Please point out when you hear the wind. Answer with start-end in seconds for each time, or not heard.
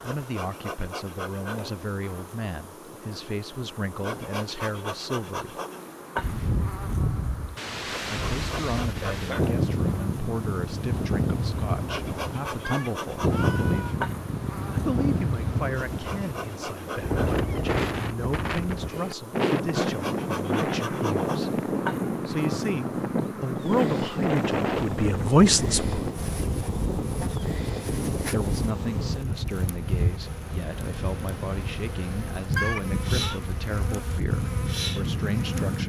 6.2-35.8.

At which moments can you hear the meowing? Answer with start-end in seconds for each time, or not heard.
12.6-14.0, 32.5-33.4.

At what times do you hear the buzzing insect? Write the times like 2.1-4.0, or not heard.
0.0-35.8.